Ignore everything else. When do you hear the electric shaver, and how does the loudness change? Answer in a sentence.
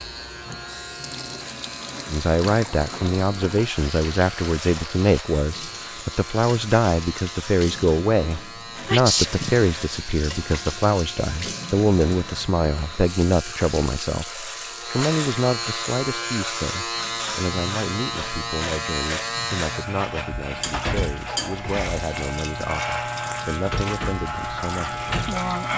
You can hear the electric shaver from 0.0 to 25.7 s, getting louder.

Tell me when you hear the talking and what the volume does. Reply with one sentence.
You can hear the talking from 2.1 to 25.7 s, getting quieter.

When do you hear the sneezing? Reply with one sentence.
The sneezing can be heard from 8.8 to 10.1 s.